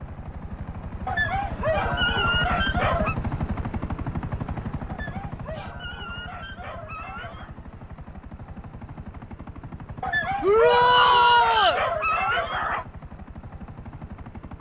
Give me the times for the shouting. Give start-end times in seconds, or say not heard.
10.4-11.8.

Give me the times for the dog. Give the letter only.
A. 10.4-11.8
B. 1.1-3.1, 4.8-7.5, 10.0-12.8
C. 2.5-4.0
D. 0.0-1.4
B.